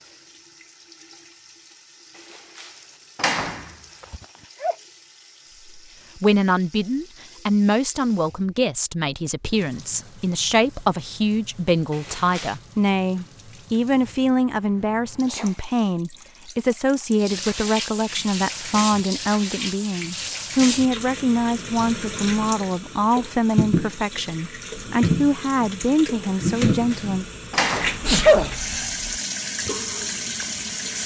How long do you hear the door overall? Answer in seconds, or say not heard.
4 s.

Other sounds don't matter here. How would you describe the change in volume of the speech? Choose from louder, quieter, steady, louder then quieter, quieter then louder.
steady.